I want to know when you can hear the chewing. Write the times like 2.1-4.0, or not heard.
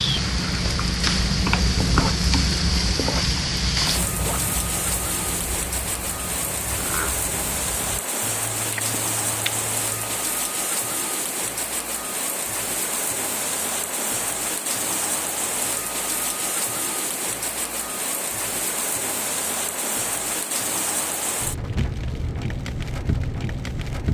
0.0-10.2.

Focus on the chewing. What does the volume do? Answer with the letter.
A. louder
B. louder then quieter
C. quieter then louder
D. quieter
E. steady
D.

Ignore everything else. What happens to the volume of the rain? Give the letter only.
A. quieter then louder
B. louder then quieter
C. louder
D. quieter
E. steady
E.